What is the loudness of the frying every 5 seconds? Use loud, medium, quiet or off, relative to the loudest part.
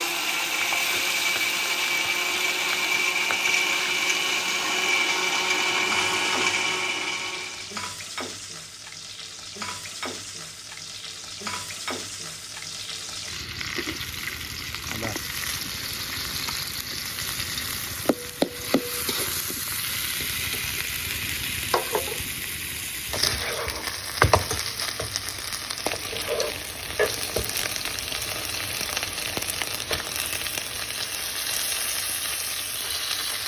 loud, medium, medium, loud, loud, loud, loud.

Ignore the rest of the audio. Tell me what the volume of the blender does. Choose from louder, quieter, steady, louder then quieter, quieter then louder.
steady.